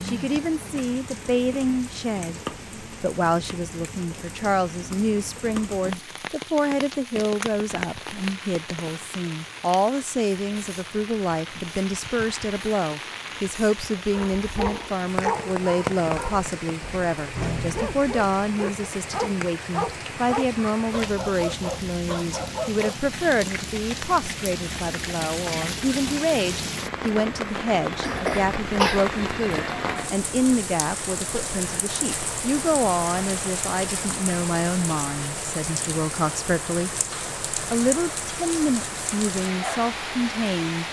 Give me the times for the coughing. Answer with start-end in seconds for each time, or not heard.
28.0-29.0.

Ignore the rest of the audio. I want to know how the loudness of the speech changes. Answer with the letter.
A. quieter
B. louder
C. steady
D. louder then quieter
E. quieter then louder
C.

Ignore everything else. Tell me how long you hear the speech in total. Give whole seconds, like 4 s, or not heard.
40 s.